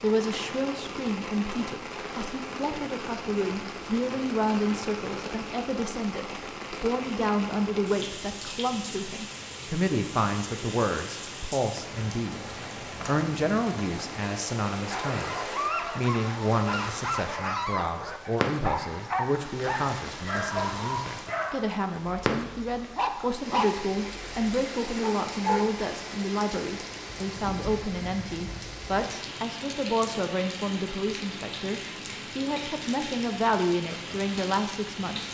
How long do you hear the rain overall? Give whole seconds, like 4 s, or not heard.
35 s.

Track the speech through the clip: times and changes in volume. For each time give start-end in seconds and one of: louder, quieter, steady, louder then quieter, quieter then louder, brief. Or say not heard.
0.0-35.2 steady.